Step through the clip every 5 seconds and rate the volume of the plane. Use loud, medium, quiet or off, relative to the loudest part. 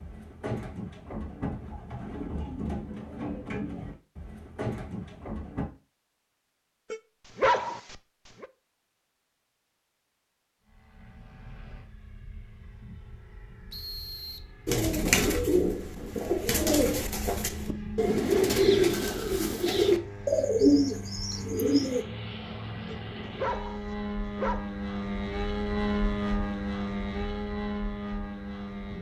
off, off, quiet, medium, medium, loud.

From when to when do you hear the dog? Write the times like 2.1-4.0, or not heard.
6.9-8.4, 22.9-24.6.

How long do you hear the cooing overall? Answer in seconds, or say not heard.
13 s.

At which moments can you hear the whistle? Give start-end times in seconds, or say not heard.
13.7-14.5.